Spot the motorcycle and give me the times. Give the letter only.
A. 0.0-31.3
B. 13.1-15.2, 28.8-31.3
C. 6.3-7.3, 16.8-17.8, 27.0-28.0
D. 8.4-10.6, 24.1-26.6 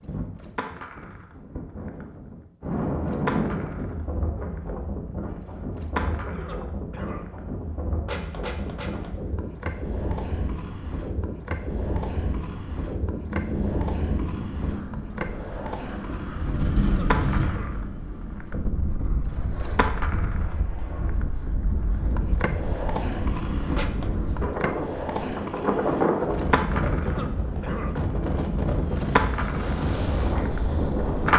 B.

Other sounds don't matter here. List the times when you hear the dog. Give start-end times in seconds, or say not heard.
not heard.